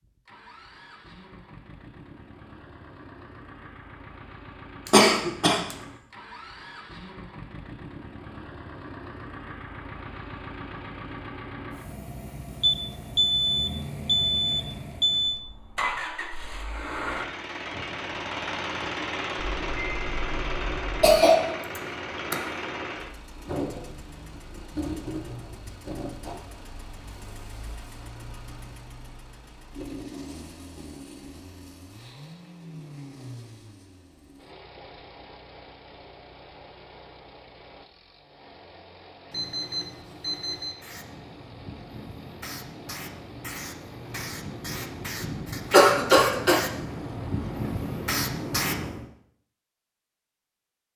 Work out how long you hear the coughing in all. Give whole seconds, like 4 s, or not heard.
3 s.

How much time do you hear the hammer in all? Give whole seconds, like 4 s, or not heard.
not heard.